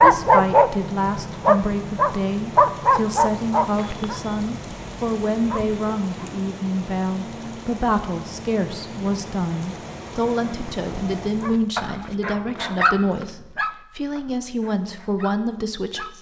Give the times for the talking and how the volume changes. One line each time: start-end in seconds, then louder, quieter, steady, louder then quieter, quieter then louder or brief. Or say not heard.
0.0-16.1 steady.